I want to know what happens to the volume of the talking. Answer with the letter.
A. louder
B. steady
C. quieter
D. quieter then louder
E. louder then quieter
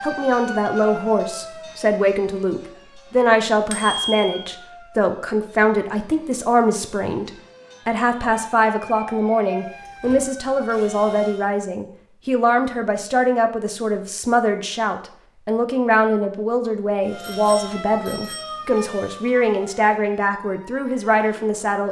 B.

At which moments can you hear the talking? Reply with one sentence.
You can hear the talking from 0.0 to 21.8 s.